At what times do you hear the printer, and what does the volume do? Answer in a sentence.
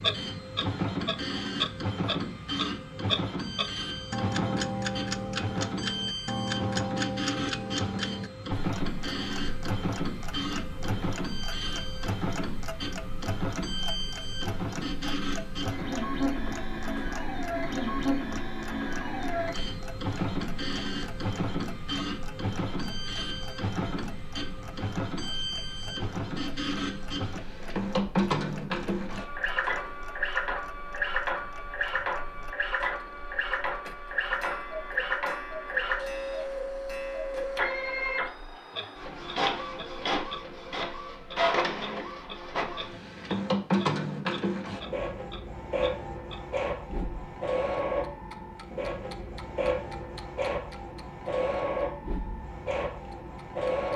The printer can be heard from 0.0 to 53.9 s, at a steady volume.